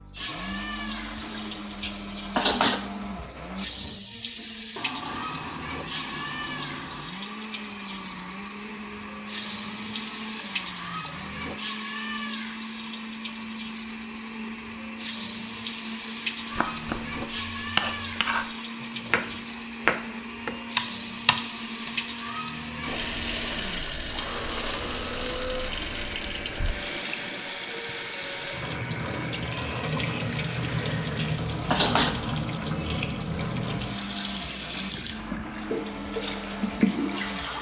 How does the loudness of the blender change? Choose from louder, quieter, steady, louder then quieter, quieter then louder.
steady.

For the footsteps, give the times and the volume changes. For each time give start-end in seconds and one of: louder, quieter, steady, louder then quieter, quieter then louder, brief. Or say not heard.
not heard.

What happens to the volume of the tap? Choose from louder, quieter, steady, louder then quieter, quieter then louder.
steady.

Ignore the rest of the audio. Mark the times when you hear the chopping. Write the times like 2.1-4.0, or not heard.
16.5-22.1.